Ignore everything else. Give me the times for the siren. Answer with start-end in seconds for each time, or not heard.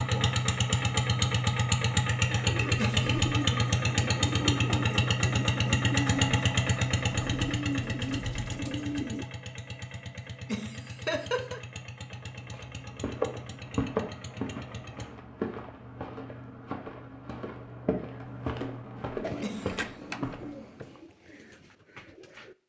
not heard.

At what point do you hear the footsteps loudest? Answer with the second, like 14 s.
14 s.